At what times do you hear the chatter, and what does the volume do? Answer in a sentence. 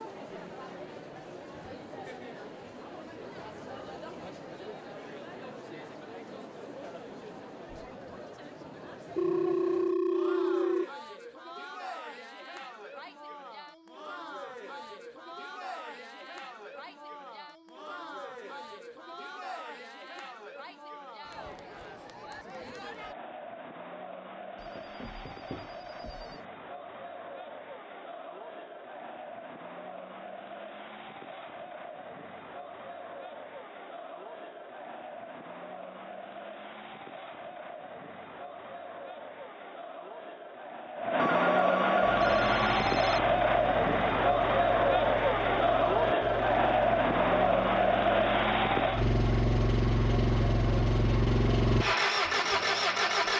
You can hear the chatter from 0.0 to 53.3 s, getting louder.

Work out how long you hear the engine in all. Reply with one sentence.
You can hear the engine for 11 seconds altogether.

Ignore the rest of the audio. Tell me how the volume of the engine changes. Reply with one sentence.
The loudness of the engine goes up.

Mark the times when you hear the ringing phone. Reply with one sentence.
You can hear the ringing phone from 9.2 to 10.8 s, from 24.6 to 26.4 s and from 41.1 to 43.2 s.